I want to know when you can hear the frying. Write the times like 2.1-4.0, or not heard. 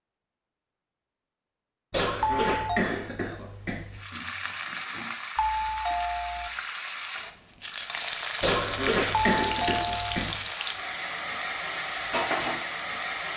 3.9-13.3.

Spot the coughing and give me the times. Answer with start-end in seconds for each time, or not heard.
1.9-4.0, 8.4-10.4.